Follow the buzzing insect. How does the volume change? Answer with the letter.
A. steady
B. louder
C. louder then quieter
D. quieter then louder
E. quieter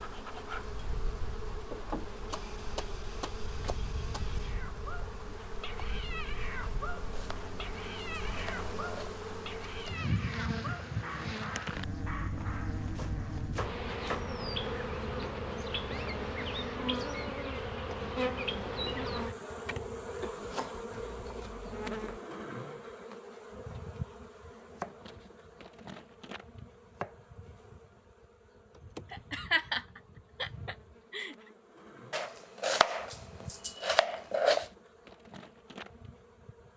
C.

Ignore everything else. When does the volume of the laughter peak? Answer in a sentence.
The loudest moment of the laughter is at 30 seconds.